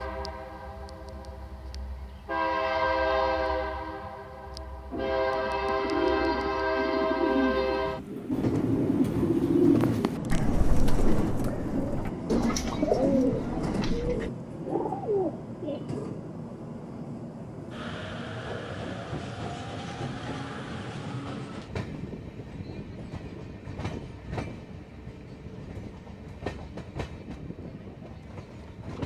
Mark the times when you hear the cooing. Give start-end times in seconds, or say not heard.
4.9-15.8.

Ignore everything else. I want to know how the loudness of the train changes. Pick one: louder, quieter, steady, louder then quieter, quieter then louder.
quieter.